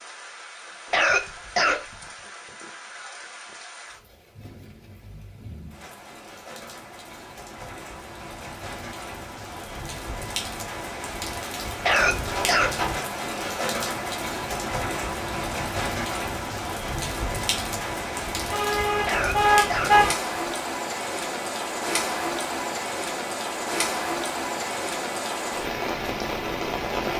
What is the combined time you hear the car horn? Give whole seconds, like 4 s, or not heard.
2 s.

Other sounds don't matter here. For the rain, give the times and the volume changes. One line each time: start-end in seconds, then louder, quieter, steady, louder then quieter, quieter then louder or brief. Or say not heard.
0.0-27.1 louder.